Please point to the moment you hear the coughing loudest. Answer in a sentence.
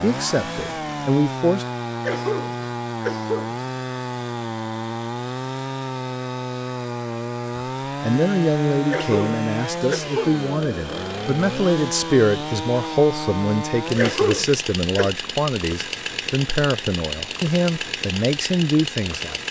The loudest moment of the coughing is at 14 seconds.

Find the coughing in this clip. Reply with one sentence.
The coughing can be heard from 2.0 to 3.5 s, from 8.9 to 10.4 s and from 13.9 to 15.1 s.